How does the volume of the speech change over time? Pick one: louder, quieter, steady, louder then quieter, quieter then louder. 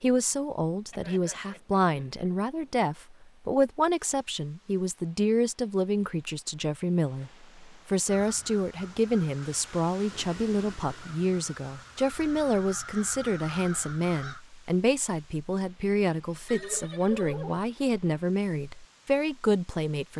steady.